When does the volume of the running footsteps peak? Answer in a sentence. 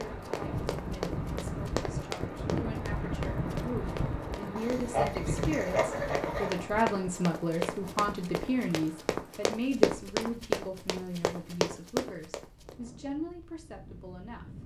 The loudest moment of the running footsteps is at 10 seconds.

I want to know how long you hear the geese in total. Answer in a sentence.
The geese can be heard for 2 seconds in total.